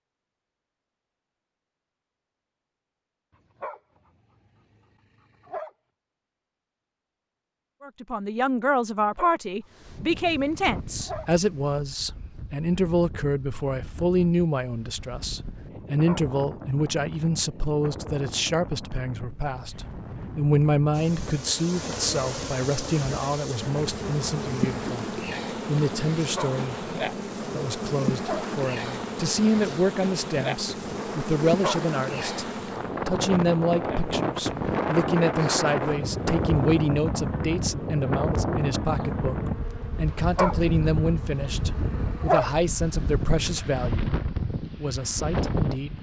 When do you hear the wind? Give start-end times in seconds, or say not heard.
9.7-45.9.